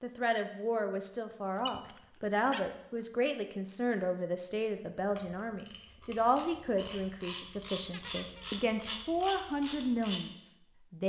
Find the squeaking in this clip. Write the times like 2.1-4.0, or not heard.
1.6-3.1, 7.9-9.0.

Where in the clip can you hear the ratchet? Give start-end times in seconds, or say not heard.
5.0-10.2.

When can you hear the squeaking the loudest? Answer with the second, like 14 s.
2 s.